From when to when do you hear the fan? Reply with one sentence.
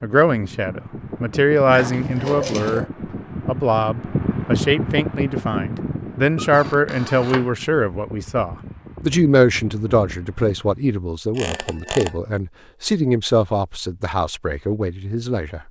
You can hear the fan from 0.2 to 10.9 s.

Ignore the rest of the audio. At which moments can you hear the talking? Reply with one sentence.
You can hear the talking from 0.0 to 2.9 s and from 3.5 to 15.6 s.